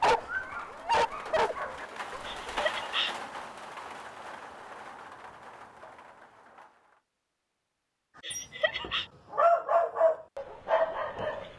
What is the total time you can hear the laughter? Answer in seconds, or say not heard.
2 s.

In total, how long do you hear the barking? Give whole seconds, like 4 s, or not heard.
6 s.